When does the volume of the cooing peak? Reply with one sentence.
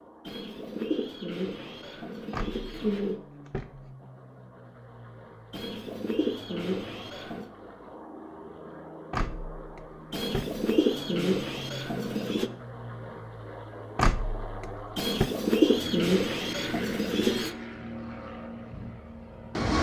The loudest moment of the cooing is at 16 seconds.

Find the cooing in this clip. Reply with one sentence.
The cooing can be heard from 0.2 to 3.2 s, from 5.5 to 7.5 s, from 10.1 to 12.5 s and from 14.9 to 17.6 s.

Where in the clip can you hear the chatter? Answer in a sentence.
You can't hear the chatter here.